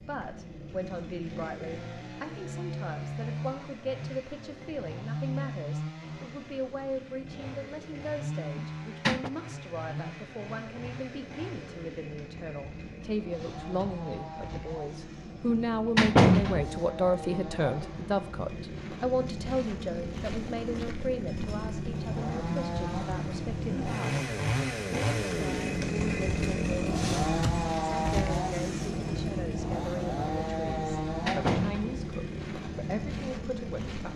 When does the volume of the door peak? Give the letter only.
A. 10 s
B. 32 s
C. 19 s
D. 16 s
D.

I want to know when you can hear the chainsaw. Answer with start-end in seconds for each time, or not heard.
0.0-34.1.